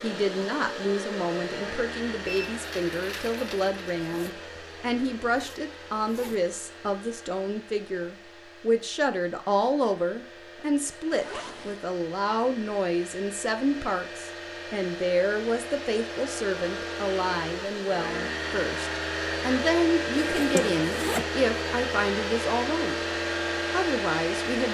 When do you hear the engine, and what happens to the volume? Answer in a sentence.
The engine can be heard from 0.0 to 24.7 s, getting quieter then louder.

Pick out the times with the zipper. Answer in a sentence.
The zipper can be heard from 4.0 to 6.4 s, from 11.1 to 11.8 s and from 20.1 to 21.2 s.